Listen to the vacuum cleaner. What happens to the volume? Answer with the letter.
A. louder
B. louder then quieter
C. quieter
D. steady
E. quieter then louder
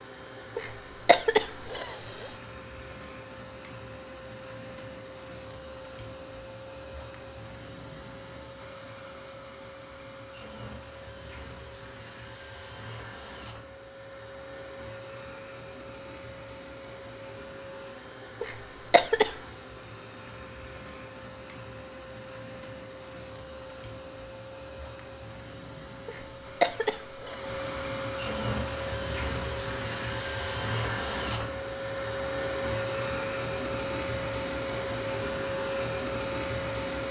A.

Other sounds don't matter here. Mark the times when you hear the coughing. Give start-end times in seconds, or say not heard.
0.6-2.3, 18.4-19.4, 26.1-27.5.